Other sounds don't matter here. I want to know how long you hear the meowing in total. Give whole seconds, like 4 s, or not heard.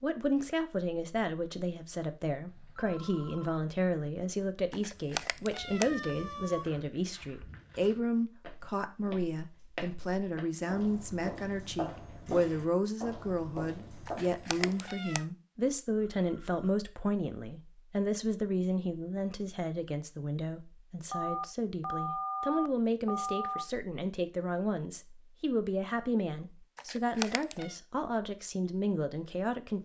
4 s.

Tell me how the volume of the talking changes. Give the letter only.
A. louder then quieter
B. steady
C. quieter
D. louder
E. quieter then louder
B.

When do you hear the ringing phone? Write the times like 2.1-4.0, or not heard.
2.5-3.6, 15.9-16.8, 21.1-23.6.